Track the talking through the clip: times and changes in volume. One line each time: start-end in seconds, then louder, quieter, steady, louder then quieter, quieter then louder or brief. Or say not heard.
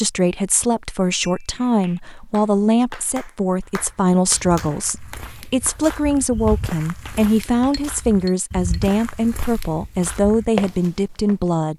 0.0-11.7 steady.